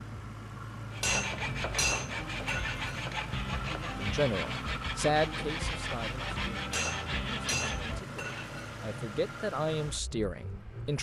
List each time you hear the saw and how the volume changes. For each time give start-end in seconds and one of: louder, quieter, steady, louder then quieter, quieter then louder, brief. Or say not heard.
0.9-8.5 steady.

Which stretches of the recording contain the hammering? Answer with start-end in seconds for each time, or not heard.
1.0-3.0, 6.7-8.5.